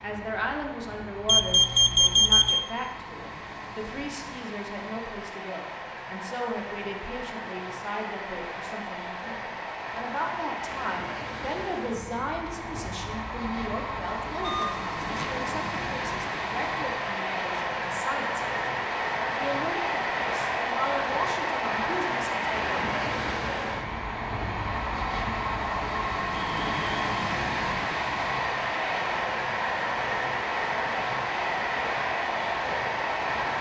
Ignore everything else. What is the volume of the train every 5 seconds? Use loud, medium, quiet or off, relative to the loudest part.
quiet, medium, medium, loud, loud, loud, loud.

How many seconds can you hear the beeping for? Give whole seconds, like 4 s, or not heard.
3 s.